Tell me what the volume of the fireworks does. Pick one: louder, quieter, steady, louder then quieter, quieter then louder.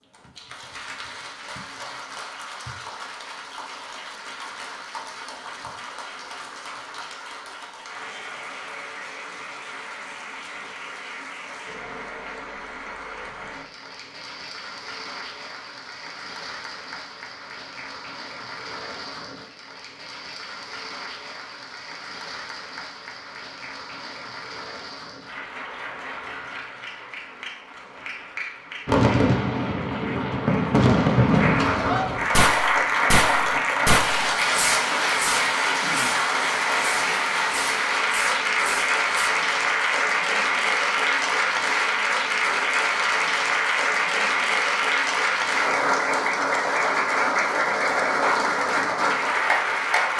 quieter.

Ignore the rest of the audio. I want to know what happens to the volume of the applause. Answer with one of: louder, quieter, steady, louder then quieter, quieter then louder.
louder.